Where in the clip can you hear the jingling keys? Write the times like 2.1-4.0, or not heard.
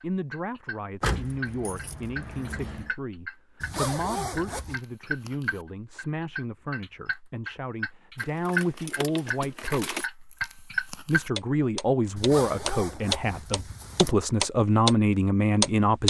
1.0-2.9, 8.2-10.1.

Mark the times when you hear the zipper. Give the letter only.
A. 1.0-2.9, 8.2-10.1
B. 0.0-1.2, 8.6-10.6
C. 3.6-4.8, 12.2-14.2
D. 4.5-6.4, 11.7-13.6
C.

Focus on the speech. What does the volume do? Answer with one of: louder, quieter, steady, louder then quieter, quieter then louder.
louder.